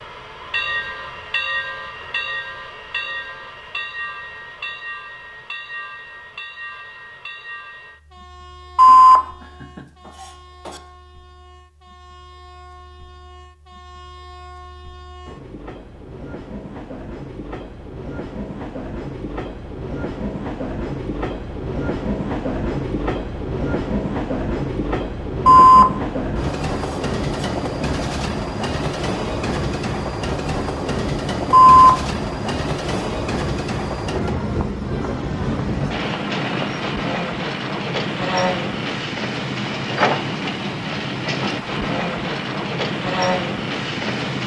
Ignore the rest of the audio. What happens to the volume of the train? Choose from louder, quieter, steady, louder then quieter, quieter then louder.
quieter then louder.